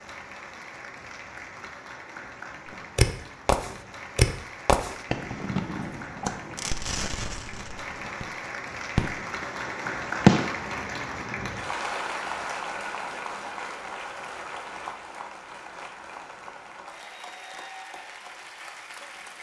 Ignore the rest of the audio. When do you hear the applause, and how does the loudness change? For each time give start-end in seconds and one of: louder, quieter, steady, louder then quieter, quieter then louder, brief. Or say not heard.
0.0-19.3 louder then quieter.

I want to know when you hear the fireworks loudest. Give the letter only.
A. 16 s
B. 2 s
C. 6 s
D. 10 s
D.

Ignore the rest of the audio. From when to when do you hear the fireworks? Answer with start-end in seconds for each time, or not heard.
3.0-8.3, 8.9-10.5.